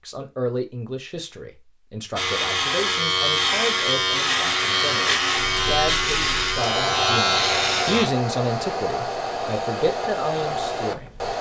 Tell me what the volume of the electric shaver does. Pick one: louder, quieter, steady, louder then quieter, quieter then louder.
steady.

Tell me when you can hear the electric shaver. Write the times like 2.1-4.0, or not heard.
2.1-8.1.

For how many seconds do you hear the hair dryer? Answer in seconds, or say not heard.
7 s.